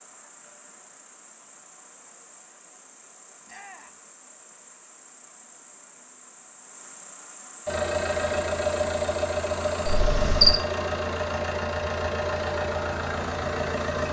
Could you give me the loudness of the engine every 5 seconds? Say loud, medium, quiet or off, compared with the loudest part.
off, loud, loud.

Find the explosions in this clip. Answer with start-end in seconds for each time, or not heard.
not heard.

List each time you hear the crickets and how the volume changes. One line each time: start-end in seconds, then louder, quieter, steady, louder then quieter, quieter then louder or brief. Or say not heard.
0.0-10.6 louder.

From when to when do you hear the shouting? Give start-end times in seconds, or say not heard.
3.5-4.0.